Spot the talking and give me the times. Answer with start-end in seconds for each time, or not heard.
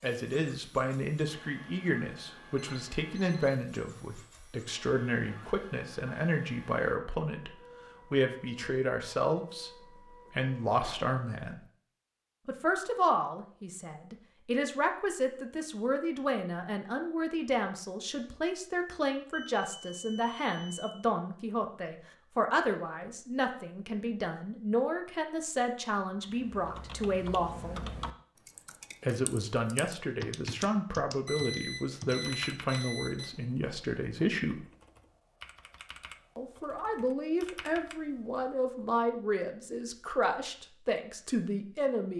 0.0-11.6, 12.4-27.8, 29.0-34.6, 36.4-42.1.